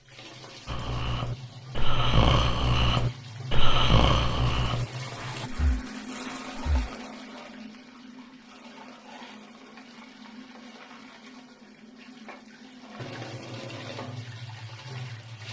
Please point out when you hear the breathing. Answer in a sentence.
You can hear the breathing from 0.7 to 6.9 s.